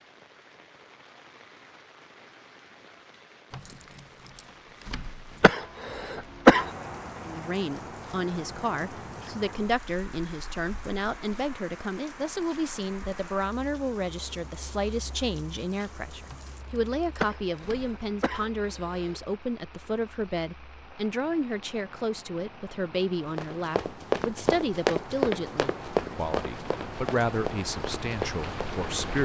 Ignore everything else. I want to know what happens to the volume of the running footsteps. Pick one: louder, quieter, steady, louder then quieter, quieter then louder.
quieter.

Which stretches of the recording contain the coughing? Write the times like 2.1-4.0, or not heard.
5.4-6.7, 17.2-19.2.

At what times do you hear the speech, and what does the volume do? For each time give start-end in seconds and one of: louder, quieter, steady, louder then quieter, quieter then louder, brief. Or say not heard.
7.2-29.1 steady.